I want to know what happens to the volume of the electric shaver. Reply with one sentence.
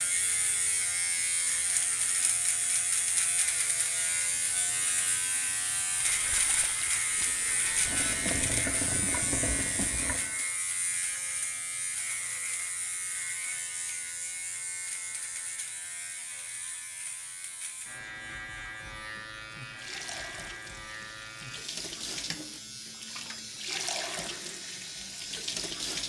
The loudness of the electric shaver goes down.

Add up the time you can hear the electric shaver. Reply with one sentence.
The electric shaver can be heard for 26 seconds in total.